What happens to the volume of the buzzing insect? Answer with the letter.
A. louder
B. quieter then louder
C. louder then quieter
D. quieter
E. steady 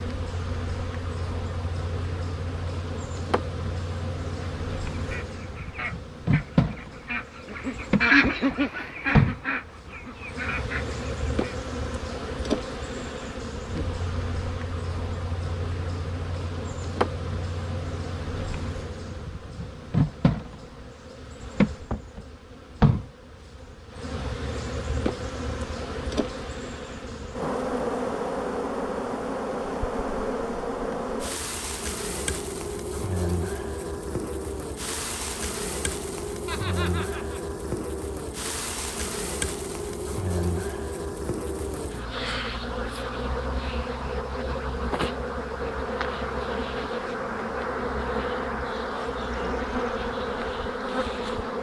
E.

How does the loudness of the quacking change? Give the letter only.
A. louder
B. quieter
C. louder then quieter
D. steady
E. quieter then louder
C.